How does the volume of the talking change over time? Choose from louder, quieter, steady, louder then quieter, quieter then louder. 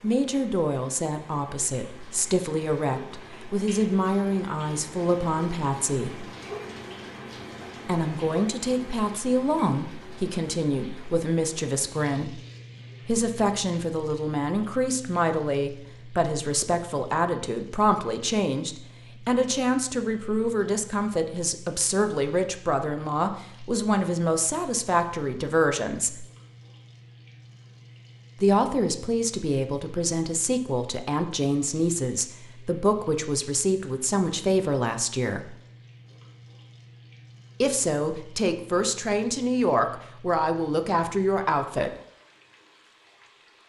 steady.